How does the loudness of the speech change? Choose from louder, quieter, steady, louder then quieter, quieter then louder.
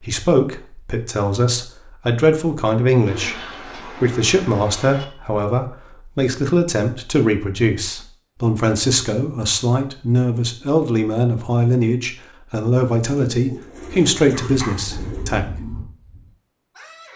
steady.